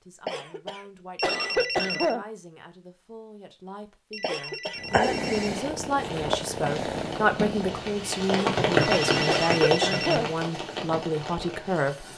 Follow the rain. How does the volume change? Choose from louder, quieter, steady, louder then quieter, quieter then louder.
louder then quieter.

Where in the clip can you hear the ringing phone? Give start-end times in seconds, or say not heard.
1.1-2.1, 4.1-5.5, 8.8-10.2.